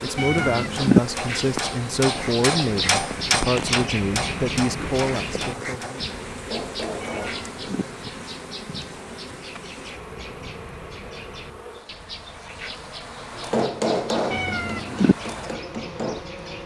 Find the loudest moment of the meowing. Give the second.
1 s.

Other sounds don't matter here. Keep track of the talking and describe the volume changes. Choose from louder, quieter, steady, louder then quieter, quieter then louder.
steady.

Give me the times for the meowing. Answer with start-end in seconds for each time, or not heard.
0.1-1.0, 7.0-7.8, 14.3-15.2.